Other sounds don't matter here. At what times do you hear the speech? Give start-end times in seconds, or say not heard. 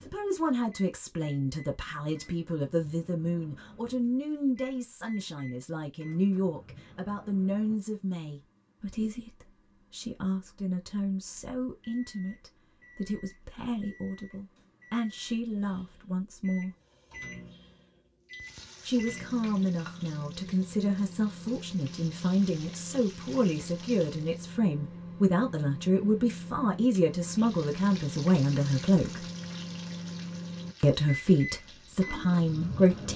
0.1-16.8, 18.9-29.2, 30.8-33.1.